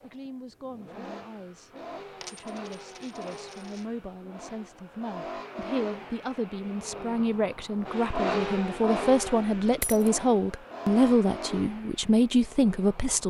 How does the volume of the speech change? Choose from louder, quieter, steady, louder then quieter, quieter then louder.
louder.